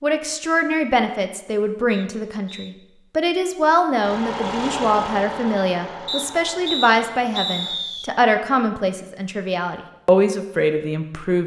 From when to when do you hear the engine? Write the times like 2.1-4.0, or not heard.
4.0-7.8.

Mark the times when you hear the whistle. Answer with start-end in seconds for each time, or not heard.
1.9-2.8, 6.0-8.1.